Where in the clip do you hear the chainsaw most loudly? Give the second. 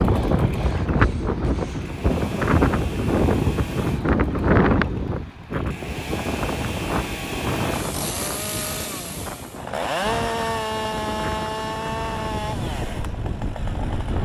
10 s.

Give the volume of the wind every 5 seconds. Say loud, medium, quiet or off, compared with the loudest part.
loud, medium, medium.